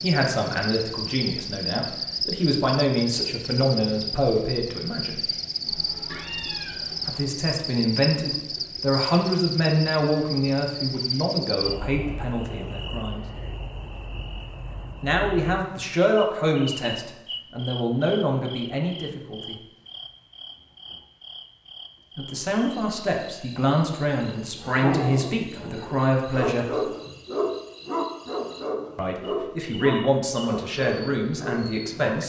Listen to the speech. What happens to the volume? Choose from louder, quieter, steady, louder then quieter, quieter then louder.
steady.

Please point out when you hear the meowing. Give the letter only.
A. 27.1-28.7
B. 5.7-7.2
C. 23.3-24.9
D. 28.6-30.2
B.